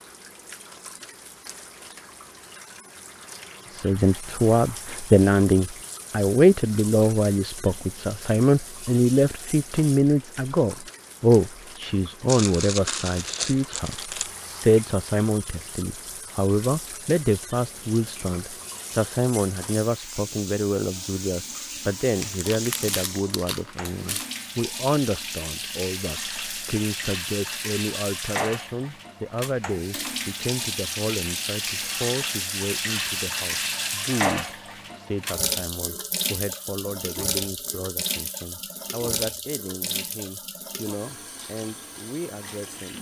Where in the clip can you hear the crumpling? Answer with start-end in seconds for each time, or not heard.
12.2-14.3, 22.2-24.2.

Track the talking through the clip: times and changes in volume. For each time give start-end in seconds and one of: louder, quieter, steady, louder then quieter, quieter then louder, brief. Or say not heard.
3.7-42.9 quieter.